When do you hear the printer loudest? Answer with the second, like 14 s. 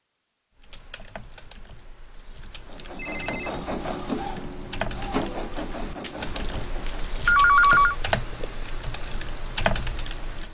4 s.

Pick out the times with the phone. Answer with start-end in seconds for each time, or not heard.
3.0-3.5, 6.0-8.0.